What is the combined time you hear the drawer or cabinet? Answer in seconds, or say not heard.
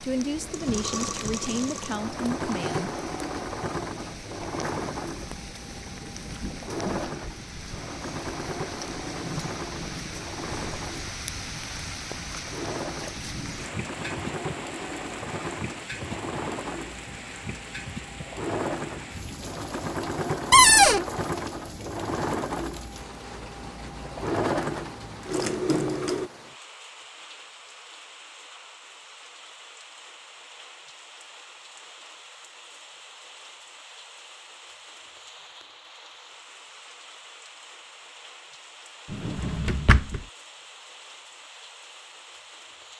3 s.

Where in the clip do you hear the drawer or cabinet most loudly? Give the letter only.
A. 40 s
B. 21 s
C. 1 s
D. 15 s
B.